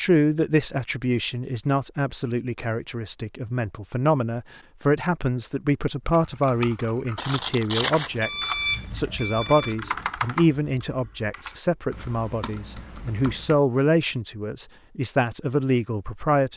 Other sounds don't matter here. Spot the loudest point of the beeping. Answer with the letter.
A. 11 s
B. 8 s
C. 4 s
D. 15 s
B.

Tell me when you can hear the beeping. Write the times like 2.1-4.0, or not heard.
7.2-9.8.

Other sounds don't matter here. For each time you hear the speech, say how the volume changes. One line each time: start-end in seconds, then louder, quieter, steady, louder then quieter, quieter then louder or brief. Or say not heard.
0.0-16.5 steady.